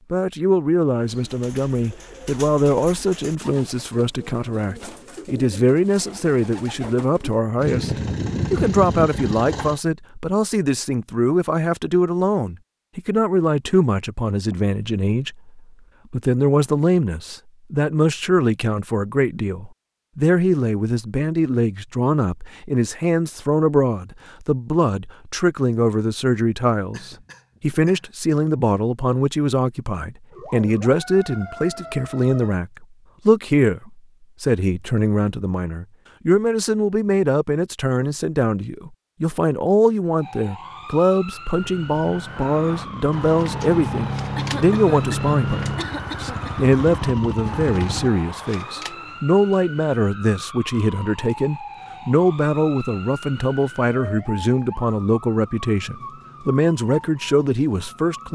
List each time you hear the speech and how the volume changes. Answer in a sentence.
You can hear the speech from 0.1 to 58.3 s, at a steady volume.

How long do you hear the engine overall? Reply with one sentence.
You can hear the engine for 9 seconds altogether.